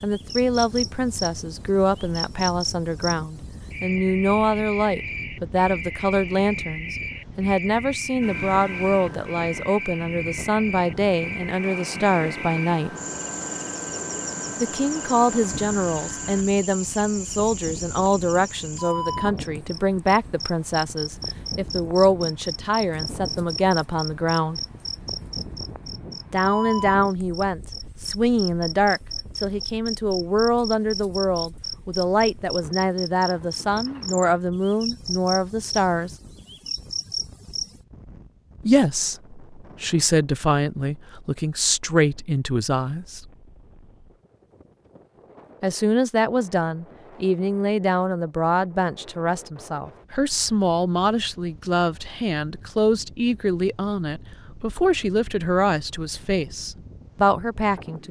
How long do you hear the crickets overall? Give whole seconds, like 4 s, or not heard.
38 s.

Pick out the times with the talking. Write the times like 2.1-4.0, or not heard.
0.0-12.9, 14.6-24.6, 26.3-36.1, 38.6-43.2, 45.6-58.0.